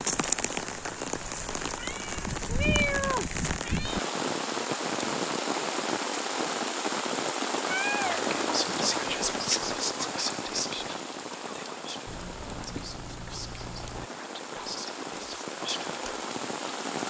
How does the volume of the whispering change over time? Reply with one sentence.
The volume of the whispering goes down, then up.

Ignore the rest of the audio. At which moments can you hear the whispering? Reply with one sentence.
You can hear the whispering from 8.0 to 16.2 s.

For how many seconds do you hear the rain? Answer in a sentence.
The rain can be heard for 17 seconds in total.